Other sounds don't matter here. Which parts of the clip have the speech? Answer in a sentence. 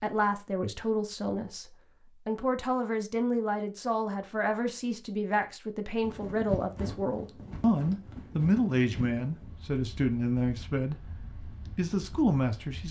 You can hear the speech from 0.0 to 12.8 s.